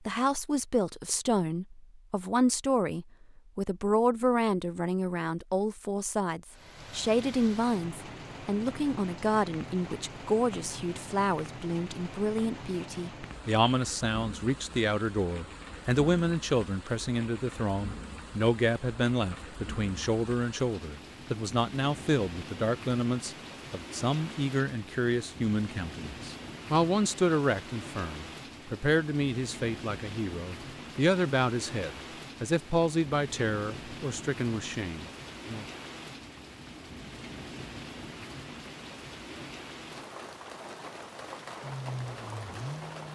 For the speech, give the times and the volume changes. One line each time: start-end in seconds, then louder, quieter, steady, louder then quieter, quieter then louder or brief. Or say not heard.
0.1-35.6 steady.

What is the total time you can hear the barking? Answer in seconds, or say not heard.
not heard.